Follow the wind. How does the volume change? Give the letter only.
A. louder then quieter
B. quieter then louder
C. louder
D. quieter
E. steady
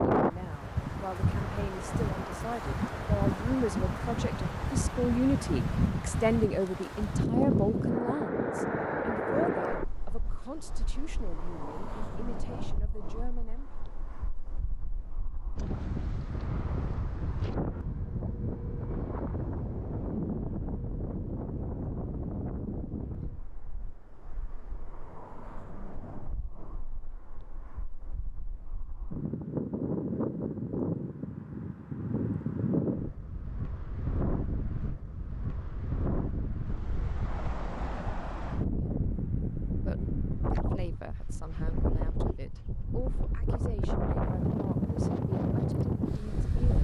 B.